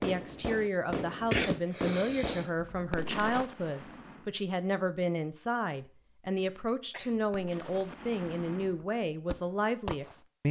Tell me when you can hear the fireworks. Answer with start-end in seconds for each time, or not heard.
0.0-4.3, 6.3-10.2.